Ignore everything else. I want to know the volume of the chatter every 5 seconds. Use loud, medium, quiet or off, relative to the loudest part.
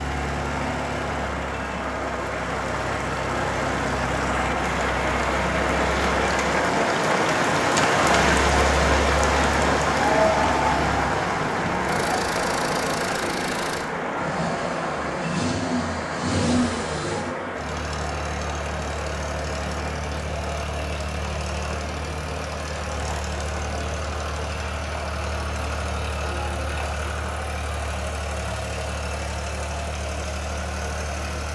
medium, loud, loud, medium, medium, medium, medium.